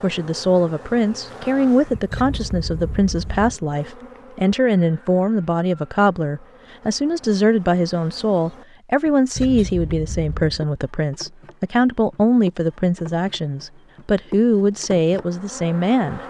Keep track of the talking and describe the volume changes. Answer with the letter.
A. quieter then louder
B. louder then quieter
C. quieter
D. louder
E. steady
E.